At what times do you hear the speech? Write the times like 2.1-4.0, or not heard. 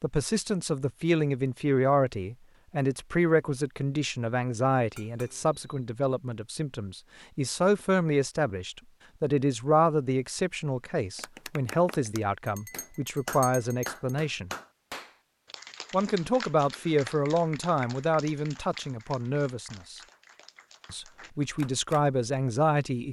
0.0-14.5, 15.9-20.0, 20.9-23.0.